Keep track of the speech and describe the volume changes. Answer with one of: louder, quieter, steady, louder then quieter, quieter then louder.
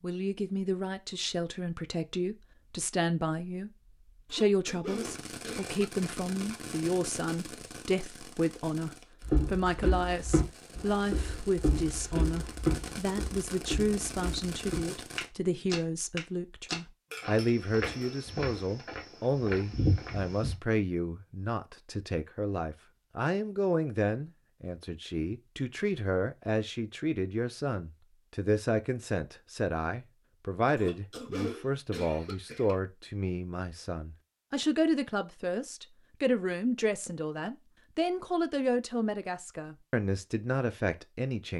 steady.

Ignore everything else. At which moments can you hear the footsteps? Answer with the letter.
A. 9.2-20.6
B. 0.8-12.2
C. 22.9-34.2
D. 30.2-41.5
A.